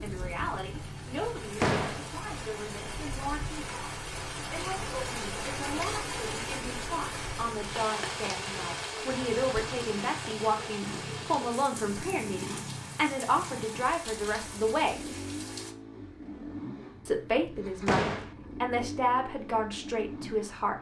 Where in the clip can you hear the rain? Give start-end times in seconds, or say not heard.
0.0-15.8.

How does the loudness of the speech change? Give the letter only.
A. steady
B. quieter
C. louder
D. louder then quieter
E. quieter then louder
C.